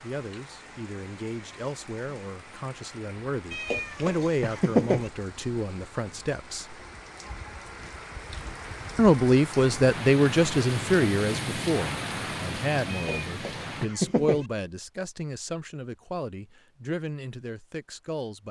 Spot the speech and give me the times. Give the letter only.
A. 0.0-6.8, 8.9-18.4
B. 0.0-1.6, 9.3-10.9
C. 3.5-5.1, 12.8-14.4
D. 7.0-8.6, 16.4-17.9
A.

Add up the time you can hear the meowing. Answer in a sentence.
You can hear the meowing for 3 seconds altogether.